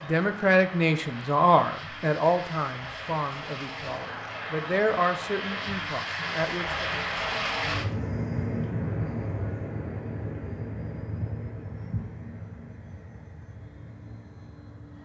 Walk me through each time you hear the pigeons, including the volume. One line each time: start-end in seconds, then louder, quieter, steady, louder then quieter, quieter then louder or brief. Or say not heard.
not heard.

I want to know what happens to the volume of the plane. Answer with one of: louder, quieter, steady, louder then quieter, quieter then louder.
louder then quieter.